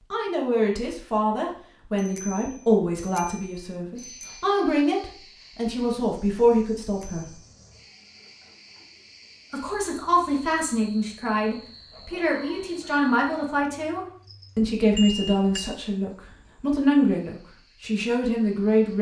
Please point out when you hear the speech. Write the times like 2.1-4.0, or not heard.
0.1-7.3, 9.5-18.9.